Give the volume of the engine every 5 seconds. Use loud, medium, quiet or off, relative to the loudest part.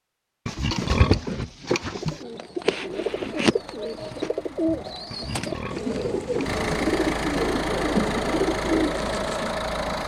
quiet, loud.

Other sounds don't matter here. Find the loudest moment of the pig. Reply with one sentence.
The loudest moment of the pig is at 1 second.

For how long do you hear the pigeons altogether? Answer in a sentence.
The pigeons can be heard for 9 seconds in total.